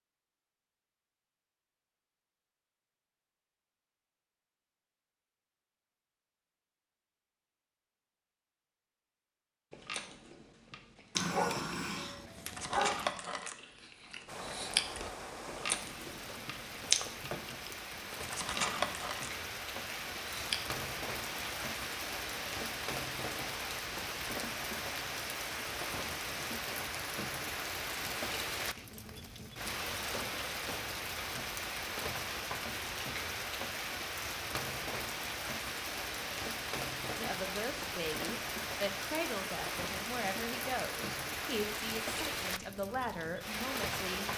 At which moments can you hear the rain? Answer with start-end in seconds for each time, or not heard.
14.2-44.3.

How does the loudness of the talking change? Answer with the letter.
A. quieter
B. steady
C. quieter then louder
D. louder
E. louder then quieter
B.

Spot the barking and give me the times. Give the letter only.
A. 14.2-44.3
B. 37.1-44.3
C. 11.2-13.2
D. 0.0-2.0
C.